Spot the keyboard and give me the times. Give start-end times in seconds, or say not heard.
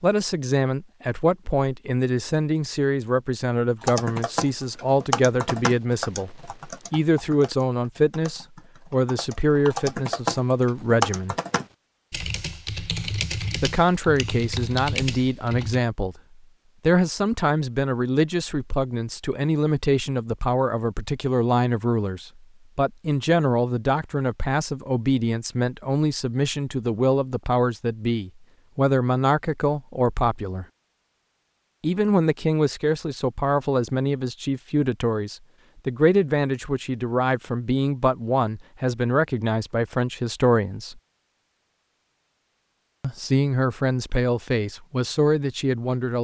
3.8-15.8.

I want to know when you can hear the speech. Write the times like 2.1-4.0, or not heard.
0.0-11.3, 13.6-16.1, 16.9-30.6, 31.8-41.0, 43.0-46.1.